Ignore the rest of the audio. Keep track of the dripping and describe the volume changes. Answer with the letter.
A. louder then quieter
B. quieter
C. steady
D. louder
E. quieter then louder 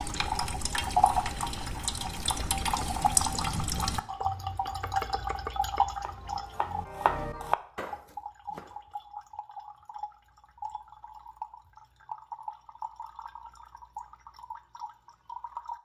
B.